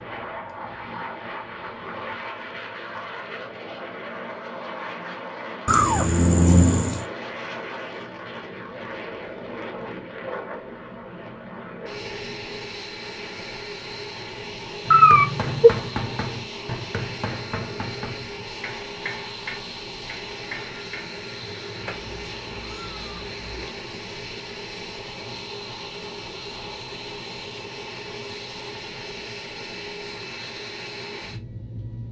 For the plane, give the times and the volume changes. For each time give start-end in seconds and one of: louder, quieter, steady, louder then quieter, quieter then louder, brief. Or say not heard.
0.0-32.0 steady.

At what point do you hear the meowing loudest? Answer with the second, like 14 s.
15 s.